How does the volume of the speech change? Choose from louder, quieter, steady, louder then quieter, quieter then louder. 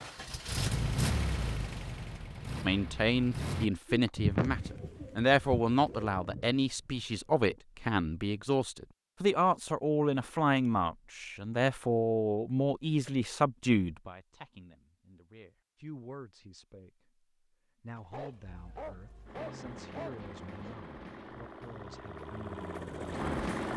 quieter.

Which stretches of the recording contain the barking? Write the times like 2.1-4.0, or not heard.
17.9-20.8.